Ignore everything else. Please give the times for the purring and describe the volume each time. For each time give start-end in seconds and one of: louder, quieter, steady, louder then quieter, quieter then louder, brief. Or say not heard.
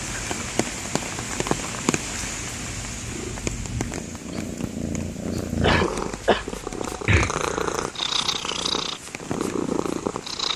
0.0-10.5 louder.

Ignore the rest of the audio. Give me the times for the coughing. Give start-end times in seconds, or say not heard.
5.6-7.9.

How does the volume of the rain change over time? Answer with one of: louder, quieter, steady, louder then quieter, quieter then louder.
quieter.